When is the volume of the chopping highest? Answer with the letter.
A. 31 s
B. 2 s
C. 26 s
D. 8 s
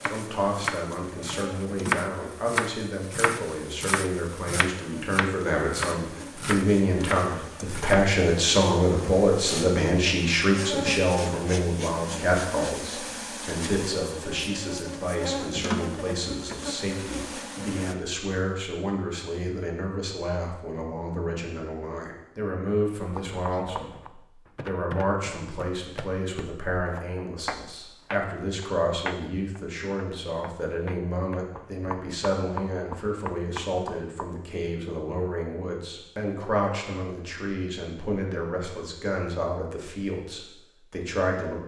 B.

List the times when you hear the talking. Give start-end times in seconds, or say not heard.
0.0-41.6.